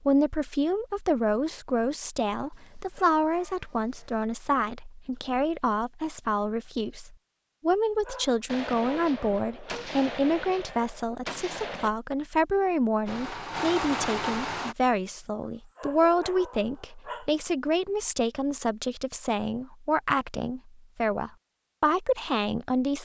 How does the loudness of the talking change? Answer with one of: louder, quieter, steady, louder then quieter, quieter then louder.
steady.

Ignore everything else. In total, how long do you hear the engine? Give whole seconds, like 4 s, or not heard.
2 s.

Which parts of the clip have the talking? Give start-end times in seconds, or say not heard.
0.0-22.9.